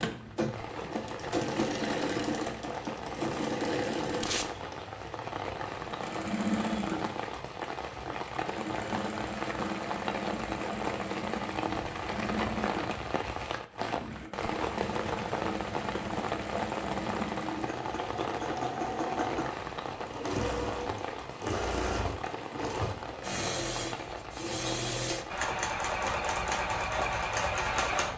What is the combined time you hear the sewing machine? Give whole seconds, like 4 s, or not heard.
28 s.